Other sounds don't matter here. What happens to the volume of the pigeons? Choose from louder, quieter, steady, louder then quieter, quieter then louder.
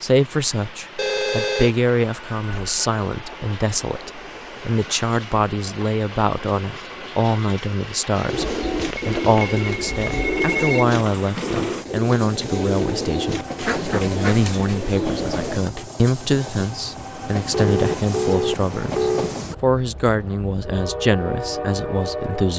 steady.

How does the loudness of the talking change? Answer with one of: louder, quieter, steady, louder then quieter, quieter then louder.
steady.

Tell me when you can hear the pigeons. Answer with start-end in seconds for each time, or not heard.
8.2-15.8.